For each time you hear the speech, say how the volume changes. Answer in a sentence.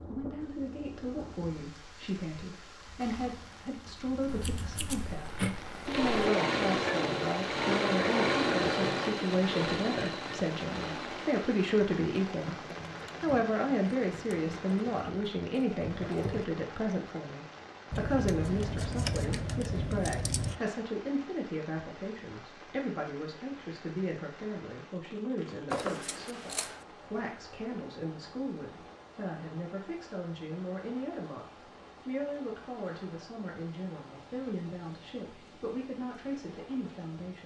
You can hear the speech from 0.1 to 12.6 s, getting louder; and from 13.2 to 37.4 s, getting quieter.